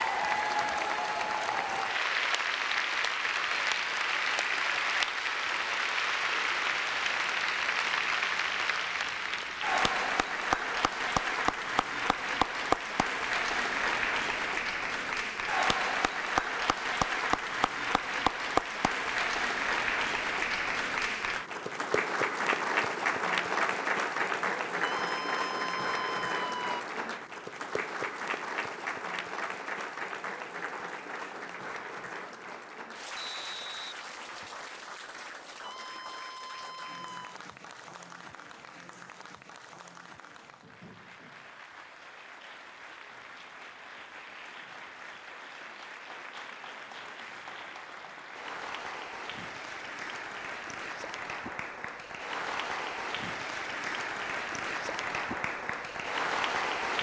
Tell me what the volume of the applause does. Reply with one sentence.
The loudness of the applause goes down, then up.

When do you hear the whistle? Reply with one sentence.
You can hear the whistle from 33.1 to 34.6 s.